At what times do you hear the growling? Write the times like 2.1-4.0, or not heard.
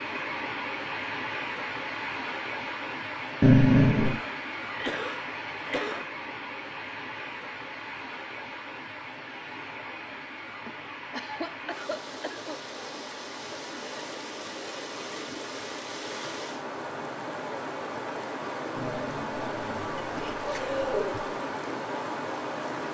3.4-4.2, 18.8-21.4.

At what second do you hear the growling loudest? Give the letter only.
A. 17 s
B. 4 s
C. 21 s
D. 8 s
B.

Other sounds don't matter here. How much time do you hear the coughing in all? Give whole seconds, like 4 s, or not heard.
5 s.